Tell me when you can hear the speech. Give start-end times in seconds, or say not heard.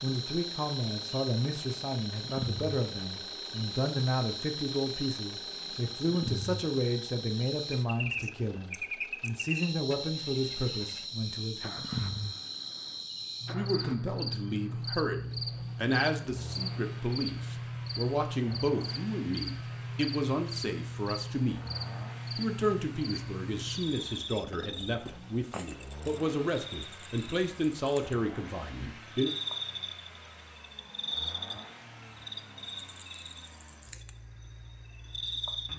0.0-11.9, 13.5-21.6, 22.4-29.3.